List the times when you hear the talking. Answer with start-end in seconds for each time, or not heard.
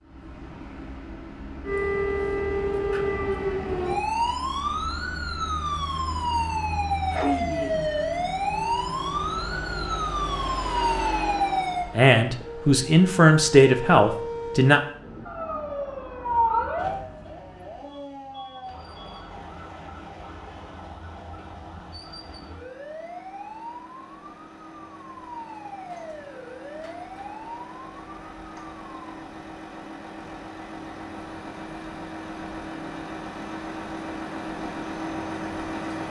11.9-14.8.